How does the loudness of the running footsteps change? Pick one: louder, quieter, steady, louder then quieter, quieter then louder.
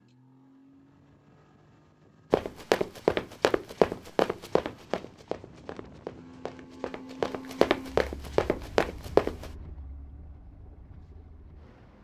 quieter then louder.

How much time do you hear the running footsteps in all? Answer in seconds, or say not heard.
7 s.